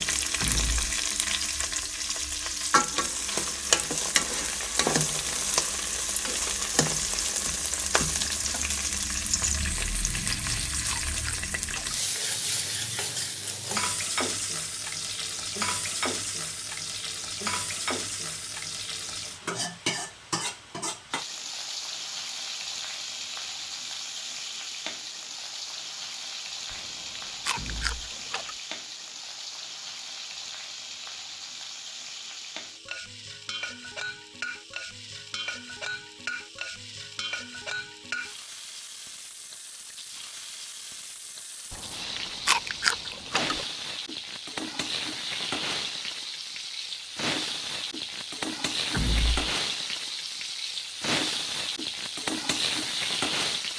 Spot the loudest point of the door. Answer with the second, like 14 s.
49 s.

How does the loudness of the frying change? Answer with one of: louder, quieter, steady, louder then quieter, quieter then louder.
quieter then louder.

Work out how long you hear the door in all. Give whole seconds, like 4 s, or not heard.
2 s.